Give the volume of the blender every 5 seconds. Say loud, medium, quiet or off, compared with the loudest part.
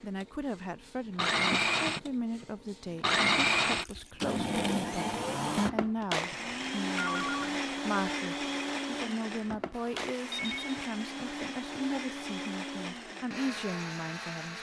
loud, loud, medium.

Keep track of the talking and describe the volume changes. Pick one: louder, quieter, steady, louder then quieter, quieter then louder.
steady.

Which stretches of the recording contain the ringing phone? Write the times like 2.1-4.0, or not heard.
1.5-2.5, 6.2-7.6, 9.7-10.8.